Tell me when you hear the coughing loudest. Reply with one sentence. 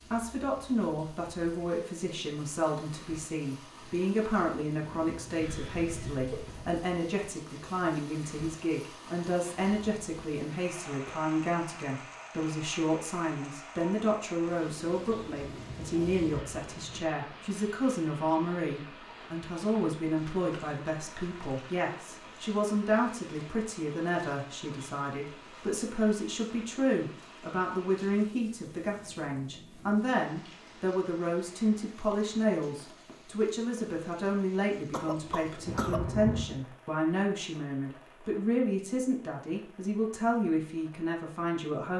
The volume of the coughing peaks at 36 seconds.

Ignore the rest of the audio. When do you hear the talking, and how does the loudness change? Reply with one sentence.
The talking can be heard from 0.1 to 41.9 s, at a steady volume.